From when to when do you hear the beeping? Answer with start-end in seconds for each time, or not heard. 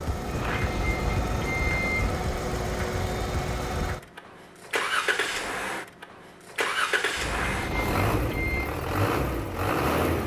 0.2-2.2, 7.2-8.7.